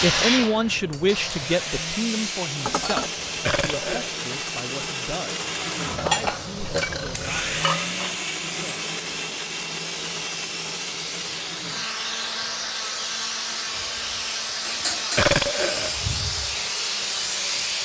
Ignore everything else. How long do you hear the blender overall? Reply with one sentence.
You can hear the blender for 18 seconds altogether.